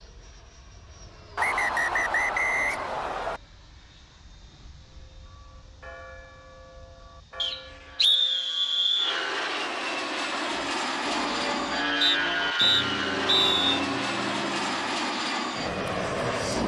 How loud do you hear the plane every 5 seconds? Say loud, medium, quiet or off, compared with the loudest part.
quiet, medium, loud, loud.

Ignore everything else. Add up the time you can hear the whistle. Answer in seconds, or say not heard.
6 s.